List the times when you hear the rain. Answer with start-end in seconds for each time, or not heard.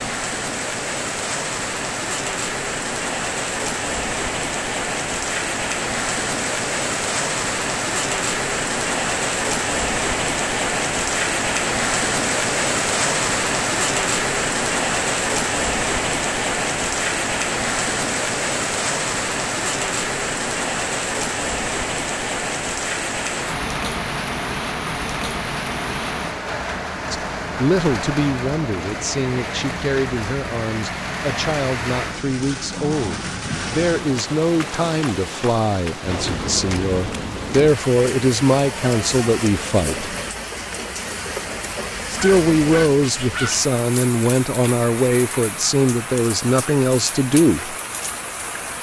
0.0-48.7.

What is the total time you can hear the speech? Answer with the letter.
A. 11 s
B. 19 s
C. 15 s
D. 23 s
B.